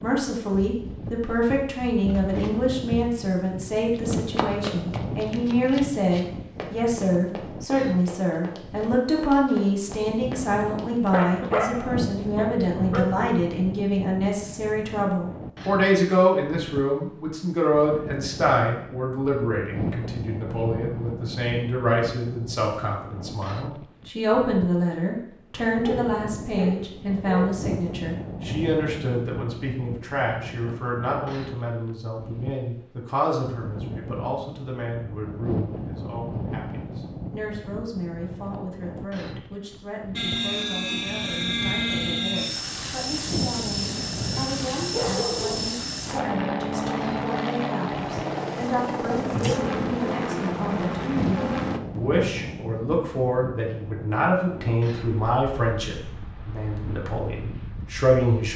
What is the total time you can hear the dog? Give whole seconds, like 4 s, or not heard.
5 s.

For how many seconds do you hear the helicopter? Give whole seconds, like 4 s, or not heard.
12 s.